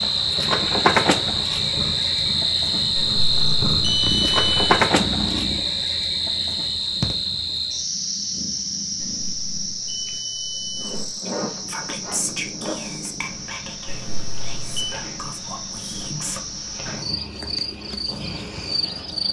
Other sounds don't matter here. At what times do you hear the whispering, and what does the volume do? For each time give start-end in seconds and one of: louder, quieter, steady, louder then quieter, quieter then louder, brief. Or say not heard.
11.2-16.4 quieter.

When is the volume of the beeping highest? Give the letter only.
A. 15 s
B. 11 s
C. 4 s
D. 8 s
C.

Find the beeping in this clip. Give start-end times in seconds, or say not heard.
3.0-4.6, 9.0-11.2, 13.8-15.0.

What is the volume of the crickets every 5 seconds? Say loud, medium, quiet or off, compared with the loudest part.
loud, medium, quiet, medium.